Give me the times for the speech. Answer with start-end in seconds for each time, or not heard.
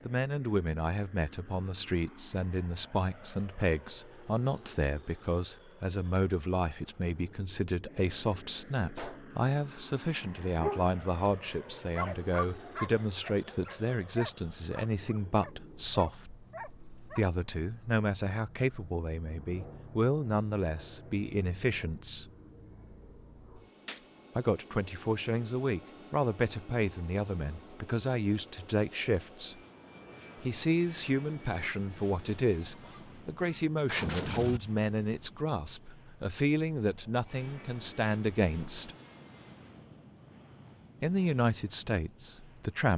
0.1-16.3, 17.1-22.3, 24.4-29.6, 30.4-39.0, 41.0-42.9.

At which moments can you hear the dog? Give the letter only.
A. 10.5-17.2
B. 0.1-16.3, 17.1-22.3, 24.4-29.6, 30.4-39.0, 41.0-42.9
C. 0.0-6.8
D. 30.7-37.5
A.